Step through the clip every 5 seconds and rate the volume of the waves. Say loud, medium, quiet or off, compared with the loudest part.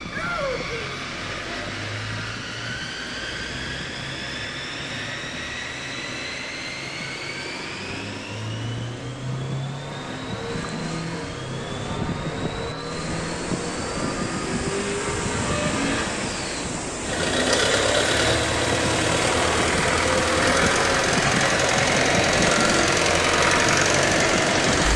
medium, medium, loud, loud, loud.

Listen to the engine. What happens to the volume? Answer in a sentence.
The volume of the engine goes up.